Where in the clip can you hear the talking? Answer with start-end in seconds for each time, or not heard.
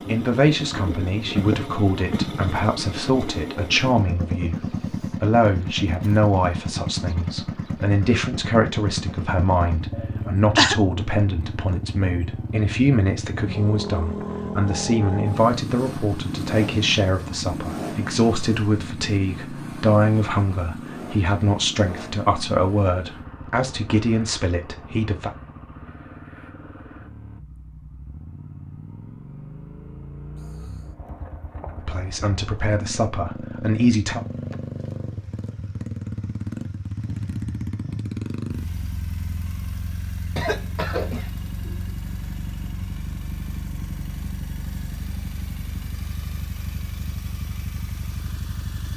0.1-25.3, 31.8-34.2.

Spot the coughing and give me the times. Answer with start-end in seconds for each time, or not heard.
9.9-10.8, 40.4-41.9.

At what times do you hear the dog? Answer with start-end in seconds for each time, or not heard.
not heard.